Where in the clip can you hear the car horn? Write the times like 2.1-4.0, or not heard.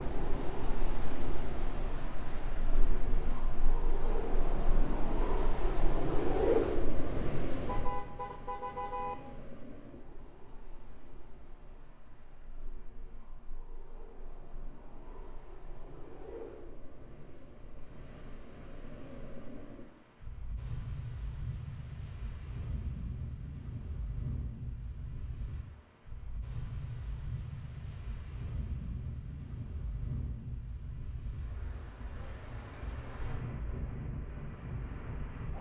7.7-9.2.